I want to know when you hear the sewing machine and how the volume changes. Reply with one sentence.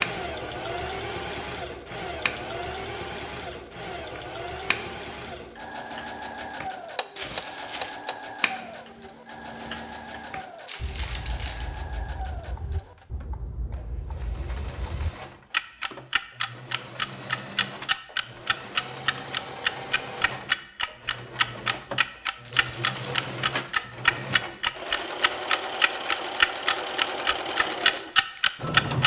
You can hear the sewing machine from 0.0 to 29.0 s, getting quieter then louder.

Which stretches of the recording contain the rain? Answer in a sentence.
You can't hear the rain here.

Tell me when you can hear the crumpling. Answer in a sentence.
You can hear the crumpling from 7.2 to 8.0 s, from 10.7 to 11.8 s and from 22.4 to 23.4 s.